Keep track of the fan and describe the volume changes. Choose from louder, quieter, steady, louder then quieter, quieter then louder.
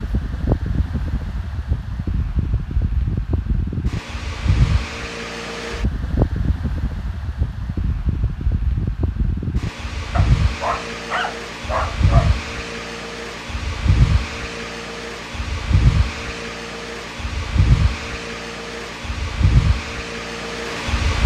steady.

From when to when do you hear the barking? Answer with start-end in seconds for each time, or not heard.
10.1-12.3.